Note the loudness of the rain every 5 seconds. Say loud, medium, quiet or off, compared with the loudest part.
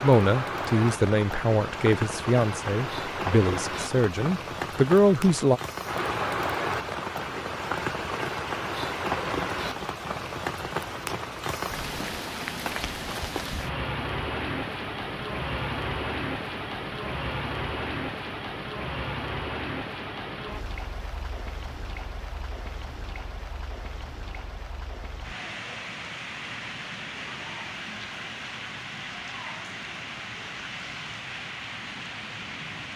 loud, loud, loud, loud, medium, medium, medium.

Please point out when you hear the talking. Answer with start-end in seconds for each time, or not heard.
0.0-5.6.